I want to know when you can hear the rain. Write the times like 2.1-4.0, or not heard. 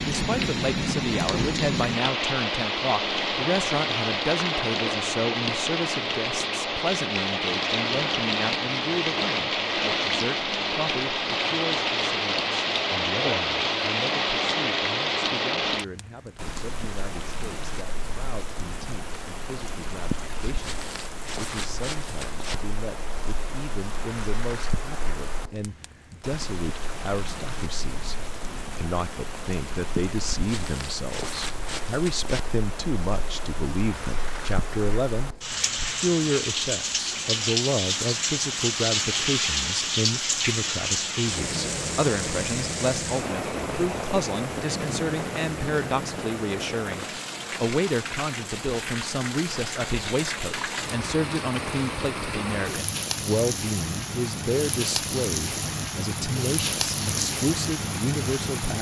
0.0-58.7.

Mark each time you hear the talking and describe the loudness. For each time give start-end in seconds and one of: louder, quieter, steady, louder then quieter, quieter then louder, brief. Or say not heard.
0.1-58.7 quieter then louder.